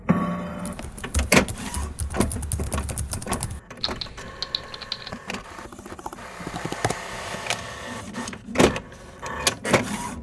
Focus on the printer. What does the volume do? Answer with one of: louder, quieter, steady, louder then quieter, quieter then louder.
quieter then louder.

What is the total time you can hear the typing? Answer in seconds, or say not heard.
6 s.